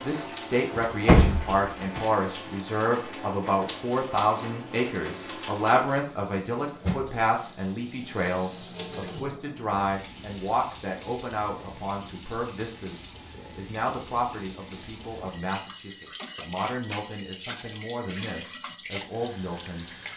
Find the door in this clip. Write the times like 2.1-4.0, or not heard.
0.8-2.0.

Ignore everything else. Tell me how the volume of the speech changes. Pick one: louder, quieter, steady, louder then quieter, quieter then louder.
quieter.